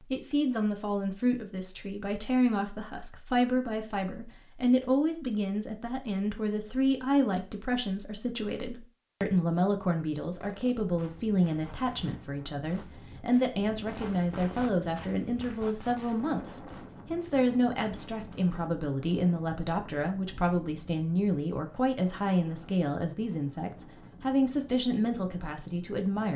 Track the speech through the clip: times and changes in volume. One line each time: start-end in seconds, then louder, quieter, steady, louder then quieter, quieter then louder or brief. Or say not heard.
0.1-26.3 steady.